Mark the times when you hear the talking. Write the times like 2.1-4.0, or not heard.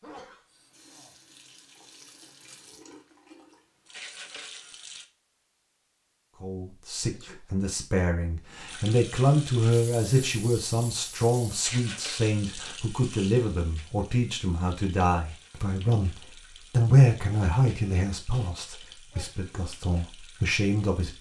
6.4-21.1.